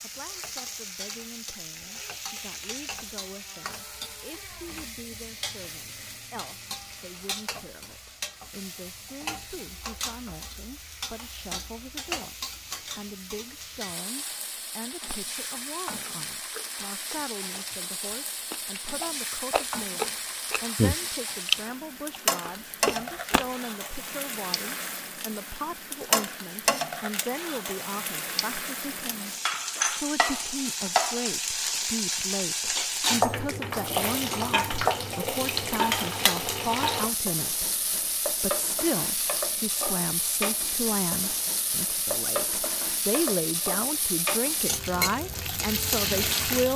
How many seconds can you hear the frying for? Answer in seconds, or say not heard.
47 s.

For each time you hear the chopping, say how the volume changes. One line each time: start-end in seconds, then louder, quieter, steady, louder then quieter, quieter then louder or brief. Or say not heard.
not heard.